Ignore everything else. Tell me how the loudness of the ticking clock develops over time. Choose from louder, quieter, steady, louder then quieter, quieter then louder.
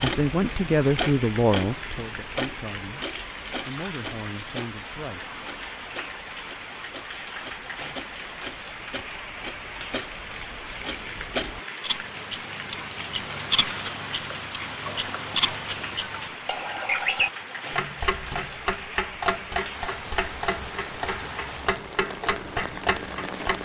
quieter then louder.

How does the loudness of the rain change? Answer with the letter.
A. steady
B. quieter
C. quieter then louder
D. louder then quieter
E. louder
A.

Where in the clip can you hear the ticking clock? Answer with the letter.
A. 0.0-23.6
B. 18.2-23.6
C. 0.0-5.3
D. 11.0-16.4
A.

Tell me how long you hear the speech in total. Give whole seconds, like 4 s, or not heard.
5 s.